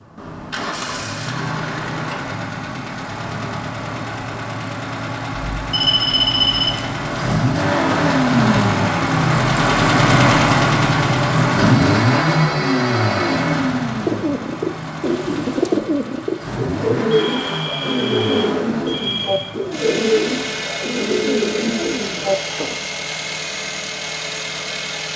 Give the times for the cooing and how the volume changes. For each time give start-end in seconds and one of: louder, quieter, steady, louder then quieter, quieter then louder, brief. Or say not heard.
13.9-22.8 steady.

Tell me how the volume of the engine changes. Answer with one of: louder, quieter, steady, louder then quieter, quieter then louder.
louder then quieter.